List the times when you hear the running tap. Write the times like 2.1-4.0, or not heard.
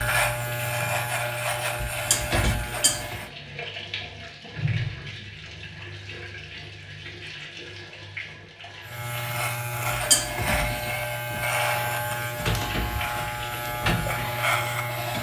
0.2-15.1.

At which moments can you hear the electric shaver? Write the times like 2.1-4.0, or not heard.
0.0-3.3, 8.8-15.1.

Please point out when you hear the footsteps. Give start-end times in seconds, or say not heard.
not heard.